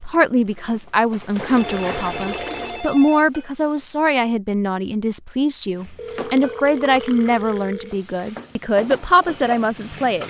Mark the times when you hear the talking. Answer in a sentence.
The talking can be heard from 0.0 to 10.2 s.